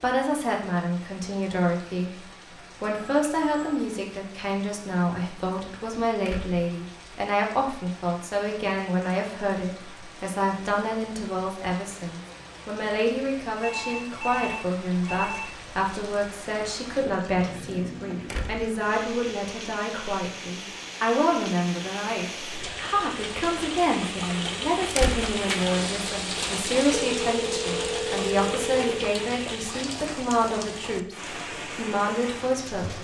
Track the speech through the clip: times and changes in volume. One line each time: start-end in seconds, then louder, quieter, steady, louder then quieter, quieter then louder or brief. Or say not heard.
0.0-2.2 brief
2.8-32.9 steady.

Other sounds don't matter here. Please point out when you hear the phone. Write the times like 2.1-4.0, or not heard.
3.0-3.9, 13.6-15.5, 26.9-28.9.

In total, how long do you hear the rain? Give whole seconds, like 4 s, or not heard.
33 s.